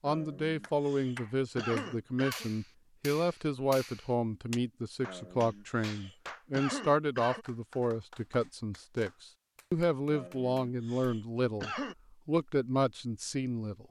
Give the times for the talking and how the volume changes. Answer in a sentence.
The talking can be heard from 0.0 to 13.8 s, at a steady volume.